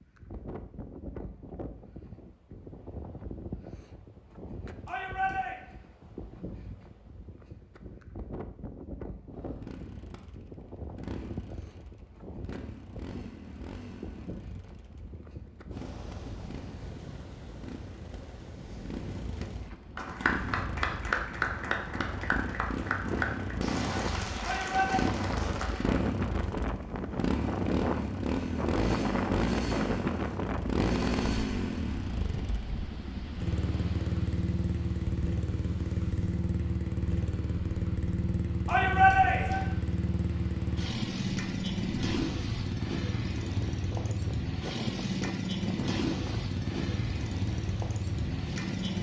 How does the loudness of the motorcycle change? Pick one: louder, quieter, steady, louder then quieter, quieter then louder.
louder.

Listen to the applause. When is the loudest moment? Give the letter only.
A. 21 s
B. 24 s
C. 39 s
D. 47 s
A.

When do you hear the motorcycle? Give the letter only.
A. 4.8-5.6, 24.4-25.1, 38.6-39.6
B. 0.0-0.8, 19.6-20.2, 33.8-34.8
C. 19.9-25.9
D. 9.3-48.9
D.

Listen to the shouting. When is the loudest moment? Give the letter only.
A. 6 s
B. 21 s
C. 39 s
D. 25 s
C.